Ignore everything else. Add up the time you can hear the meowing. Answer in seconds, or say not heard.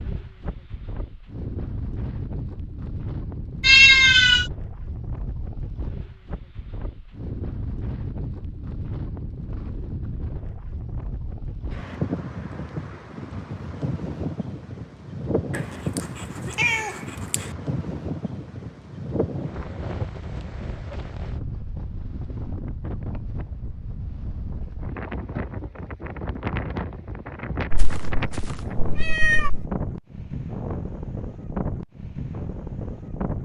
5 s.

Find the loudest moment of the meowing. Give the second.
4 s.